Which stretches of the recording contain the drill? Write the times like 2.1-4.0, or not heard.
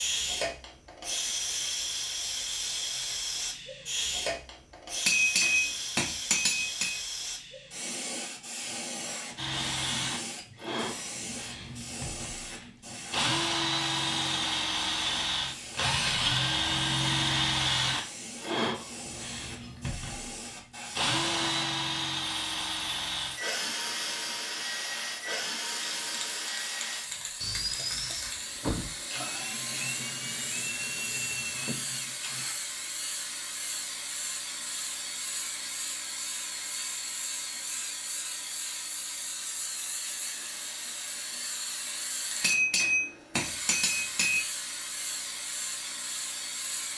9.3-32.5.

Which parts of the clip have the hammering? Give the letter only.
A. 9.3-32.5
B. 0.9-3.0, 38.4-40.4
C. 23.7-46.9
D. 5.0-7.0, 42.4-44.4
D.